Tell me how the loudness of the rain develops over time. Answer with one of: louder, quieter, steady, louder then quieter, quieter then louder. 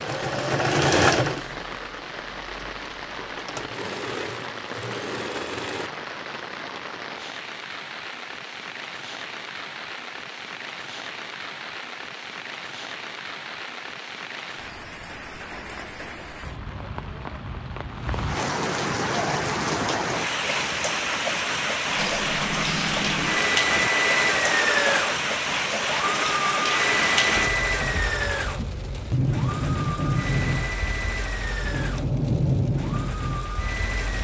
louder.